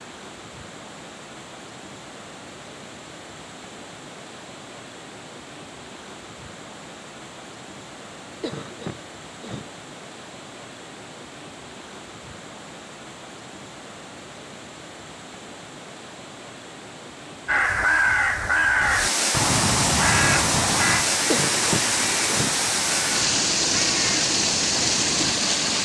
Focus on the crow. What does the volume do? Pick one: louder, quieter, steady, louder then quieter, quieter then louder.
quieter.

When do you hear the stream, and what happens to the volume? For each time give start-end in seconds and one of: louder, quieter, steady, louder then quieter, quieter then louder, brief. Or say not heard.
0.0-25.7 louder.